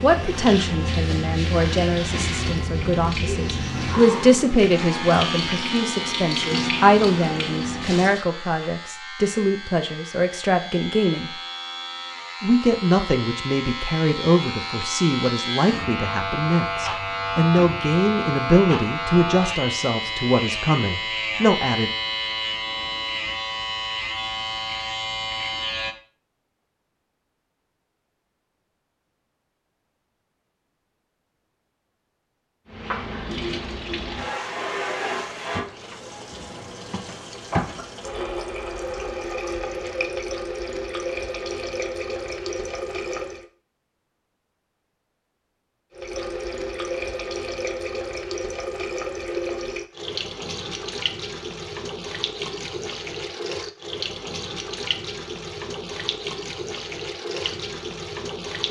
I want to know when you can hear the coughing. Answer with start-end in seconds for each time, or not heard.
not heard.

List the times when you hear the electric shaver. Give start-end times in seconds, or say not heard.
0.0-25.9.